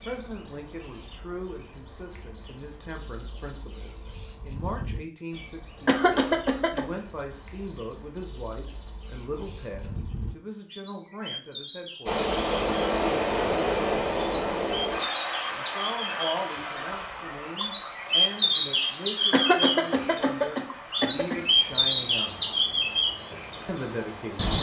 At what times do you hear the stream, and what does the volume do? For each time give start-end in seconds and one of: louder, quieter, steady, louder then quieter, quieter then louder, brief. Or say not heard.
12.1-24.5 quieter.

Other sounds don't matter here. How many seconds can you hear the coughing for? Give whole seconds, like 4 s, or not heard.
3 s.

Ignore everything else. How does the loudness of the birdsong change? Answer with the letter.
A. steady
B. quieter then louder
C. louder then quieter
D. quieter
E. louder
E.